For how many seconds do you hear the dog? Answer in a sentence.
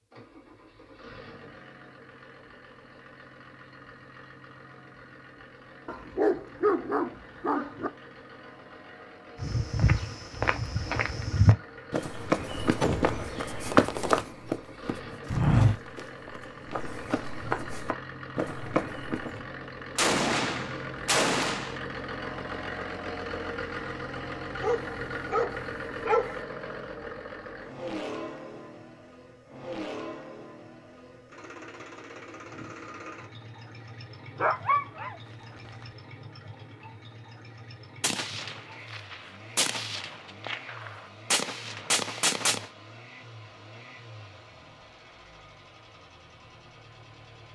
You can hear the dog for 5 seconds altogether.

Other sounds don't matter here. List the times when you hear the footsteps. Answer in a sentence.
The footsteps can be heard from 9.4 to 19.4 s.